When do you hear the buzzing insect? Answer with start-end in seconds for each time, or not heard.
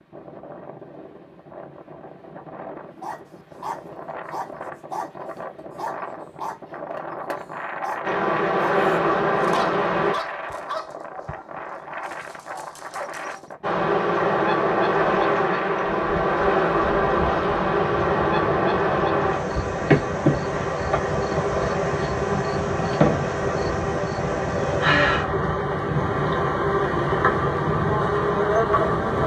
8.0-10.2, 13.6-29.2.